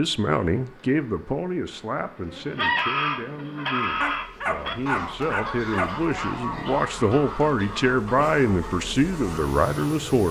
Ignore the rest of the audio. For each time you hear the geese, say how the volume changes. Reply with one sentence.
You can hear the geese from 2.5 to 10.1 s, getting quieter.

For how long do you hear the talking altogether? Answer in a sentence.
You can hear the talking for 10 seconds altogether.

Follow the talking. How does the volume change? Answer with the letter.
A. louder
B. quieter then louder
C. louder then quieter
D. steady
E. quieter
B.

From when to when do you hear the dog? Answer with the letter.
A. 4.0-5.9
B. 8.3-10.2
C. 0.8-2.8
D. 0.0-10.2
A.